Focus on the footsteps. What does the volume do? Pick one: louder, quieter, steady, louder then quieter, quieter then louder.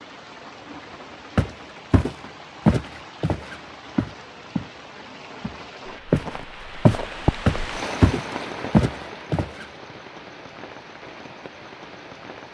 quieter then louder.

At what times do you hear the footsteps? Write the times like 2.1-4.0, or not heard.
1.4-4.8, 5.4-9.7.